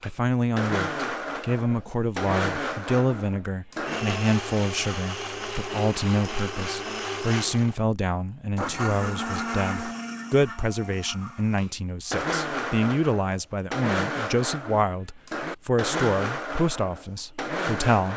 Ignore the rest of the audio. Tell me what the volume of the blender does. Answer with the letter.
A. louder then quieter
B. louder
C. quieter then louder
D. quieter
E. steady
E.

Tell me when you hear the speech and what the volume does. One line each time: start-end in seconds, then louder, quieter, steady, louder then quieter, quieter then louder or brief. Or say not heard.
0.0-18.1 steady.